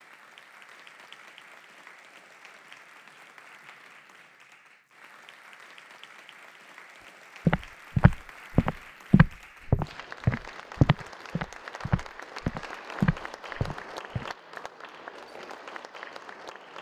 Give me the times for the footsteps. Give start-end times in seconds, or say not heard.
7.5-14.2.